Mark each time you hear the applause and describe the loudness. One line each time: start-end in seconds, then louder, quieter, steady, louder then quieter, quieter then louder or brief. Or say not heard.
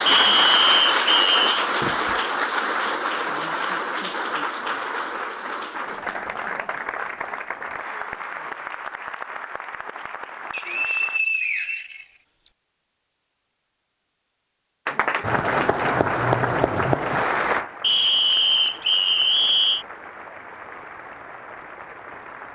0.0-11.2 quieter
14.8-22.5 quieter.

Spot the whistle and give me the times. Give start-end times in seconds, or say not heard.
0.1-1.4, 10.5-12.5, 17.8-19.9.